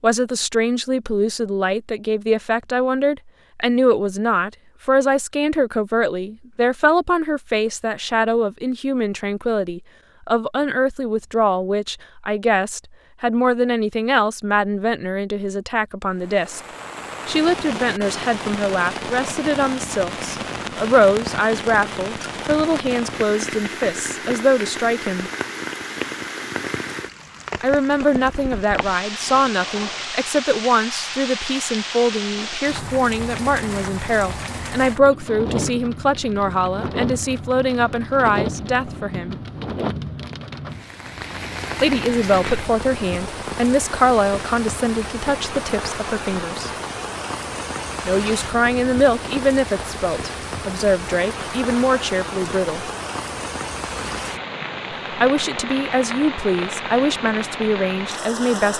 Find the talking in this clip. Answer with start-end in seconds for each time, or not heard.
0.0-16.6, 17.2-25.3, 27.6-39.4, 41.8-46.7, 48.0-52.9, 55.1-58.7.